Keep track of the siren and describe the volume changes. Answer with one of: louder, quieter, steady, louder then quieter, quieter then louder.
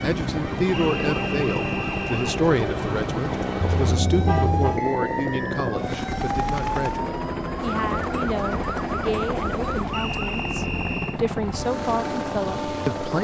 steady.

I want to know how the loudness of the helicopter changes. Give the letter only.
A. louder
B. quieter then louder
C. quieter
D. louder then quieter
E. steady
E.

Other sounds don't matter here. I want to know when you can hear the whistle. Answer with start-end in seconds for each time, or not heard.
0.7-2.4, 4.8-5.8, 9.9-11.2.